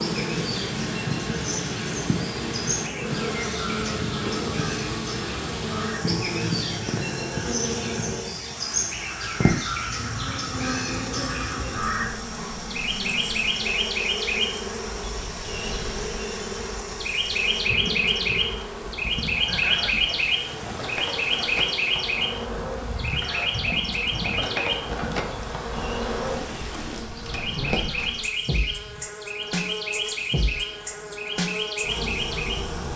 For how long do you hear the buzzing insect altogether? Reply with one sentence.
You can hear the buzzing insect for 33 seconds altogether.